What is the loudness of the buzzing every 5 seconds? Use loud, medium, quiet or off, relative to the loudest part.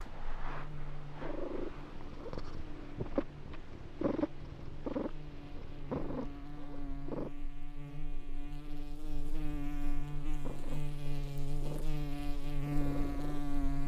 quiet, medium, loud.